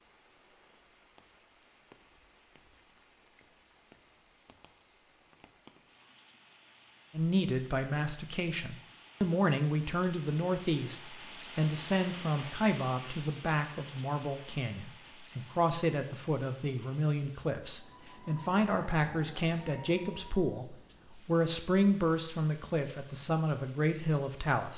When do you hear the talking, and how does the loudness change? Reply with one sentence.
The talking can be heard from 7.1 to 24.7 s, at a steady volume.